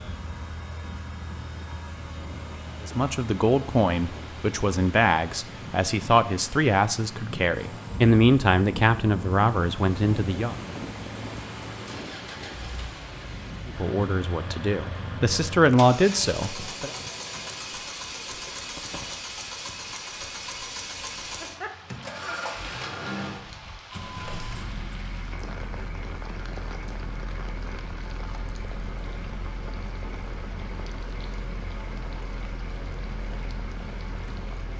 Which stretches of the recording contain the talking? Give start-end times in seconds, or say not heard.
2.8-10.6, 13.7-16.9.